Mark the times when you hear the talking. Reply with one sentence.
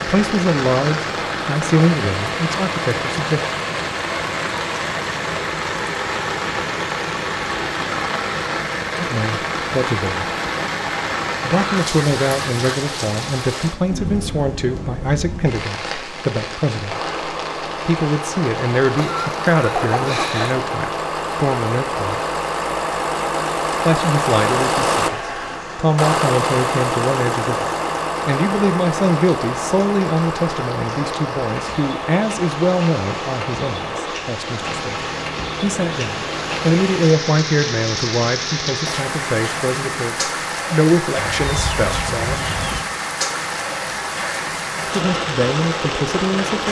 You can hear the talking from 0.0 to 3.4 s, from 8.9 to 10.3 s, from 11.4 to 17.1 s, from 17.9 to 22.2 s, from 23.9 to 42.5 s and from 44.9 to 46.6 s.